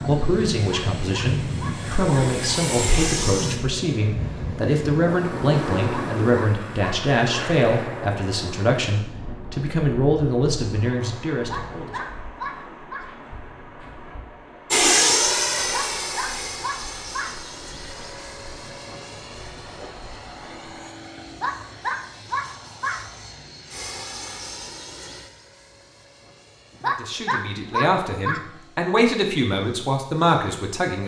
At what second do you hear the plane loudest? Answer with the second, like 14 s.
15 s.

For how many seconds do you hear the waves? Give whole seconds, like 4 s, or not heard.
21 s.